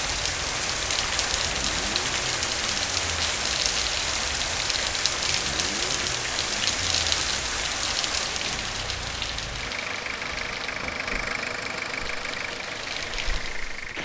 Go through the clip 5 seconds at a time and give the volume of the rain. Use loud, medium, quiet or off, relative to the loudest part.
loud, loud, medium.